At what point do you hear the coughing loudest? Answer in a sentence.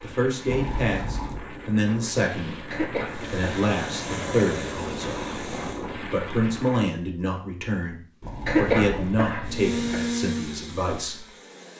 The volume of the coughing peaks at 9 seconds.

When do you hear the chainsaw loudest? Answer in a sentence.
The volume of the chainsaw peaks at 10 seconds.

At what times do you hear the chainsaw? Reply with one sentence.
The chainsaw can be heard from 3.0 to 5.8 s and from 9.4 to 11.7 s.